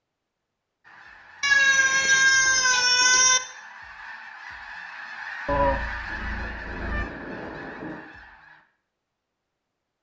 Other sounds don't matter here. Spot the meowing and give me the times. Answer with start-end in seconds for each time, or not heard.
1.4-3.4, 5.5-7.0.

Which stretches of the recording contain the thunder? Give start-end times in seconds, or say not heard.
6.0-8.0.